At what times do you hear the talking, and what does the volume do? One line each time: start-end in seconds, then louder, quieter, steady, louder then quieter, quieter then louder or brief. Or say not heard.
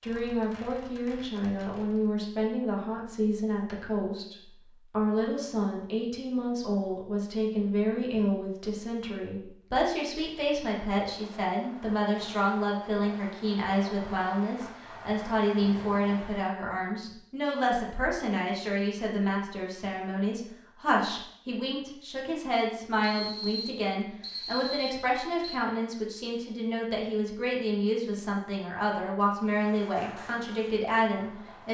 0.0-31.7 steady.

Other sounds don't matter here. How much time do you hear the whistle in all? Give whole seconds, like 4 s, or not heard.
3 s.